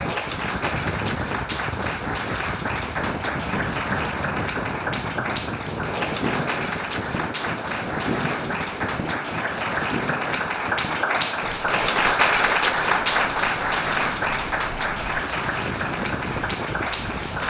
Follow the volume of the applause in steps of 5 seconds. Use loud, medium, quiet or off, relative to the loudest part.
medium, medium, loud, medium.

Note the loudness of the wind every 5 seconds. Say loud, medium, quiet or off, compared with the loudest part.
loud, loud, medium, loud.